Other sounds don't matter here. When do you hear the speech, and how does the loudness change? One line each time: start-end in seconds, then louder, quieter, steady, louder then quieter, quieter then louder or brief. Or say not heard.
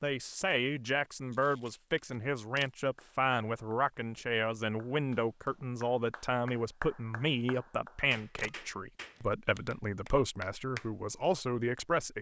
0.0-12.1 steady.